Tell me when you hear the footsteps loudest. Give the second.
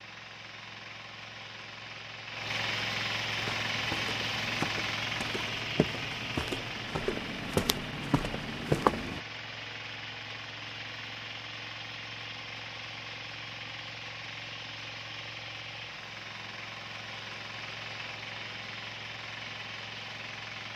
9 s.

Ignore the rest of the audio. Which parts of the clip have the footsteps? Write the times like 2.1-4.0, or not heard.
3.4-9.2.